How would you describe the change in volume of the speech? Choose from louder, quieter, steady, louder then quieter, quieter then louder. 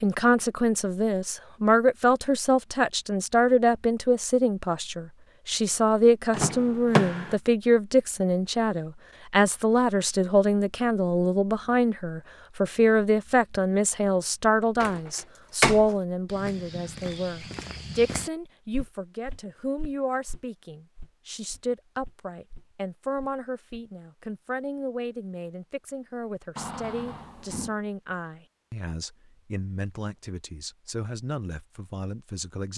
quieter.